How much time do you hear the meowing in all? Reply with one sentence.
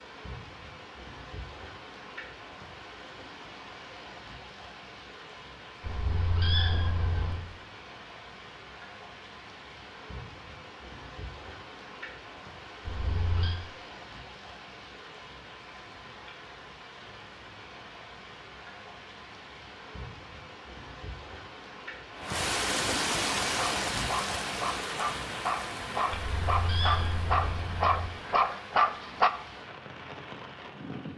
You can hear the meowing for 4 seconds altogether.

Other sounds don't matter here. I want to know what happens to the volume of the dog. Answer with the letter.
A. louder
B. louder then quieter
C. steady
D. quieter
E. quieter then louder
A.